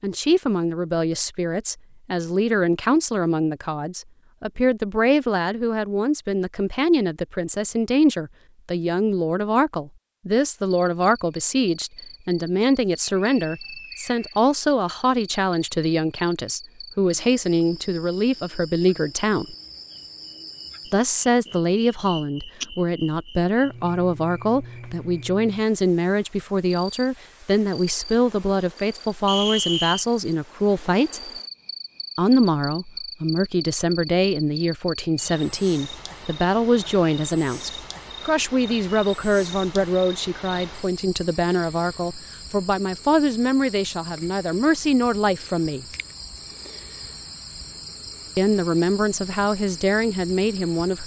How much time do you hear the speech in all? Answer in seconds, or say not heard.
46 s.